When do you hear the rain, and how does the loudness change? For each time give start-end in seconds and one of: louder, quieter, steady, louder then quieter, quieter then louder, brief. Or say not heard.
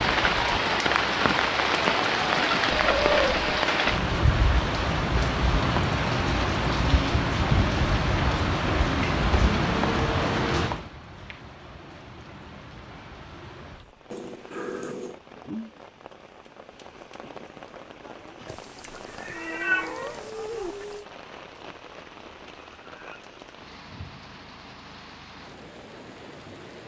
0.0-26.8 quieter.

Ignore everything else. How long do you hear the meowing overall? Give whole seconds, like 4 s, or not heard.
4 s.